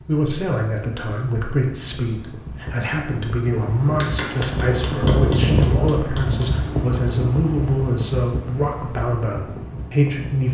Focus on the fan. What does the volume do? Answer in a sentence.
The volume of the fan goes up, then down.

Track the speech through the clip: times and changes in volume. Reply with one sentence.
The speech can be heard from 0.0 to 10.4 s, at a steady volume.